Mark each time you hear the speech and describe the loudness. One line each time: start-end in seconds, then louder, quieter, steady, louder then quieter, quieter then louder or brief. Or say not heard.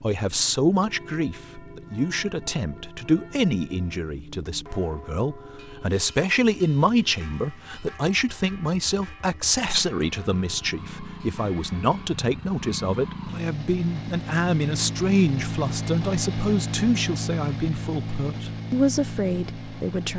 0.0-20.1 steady.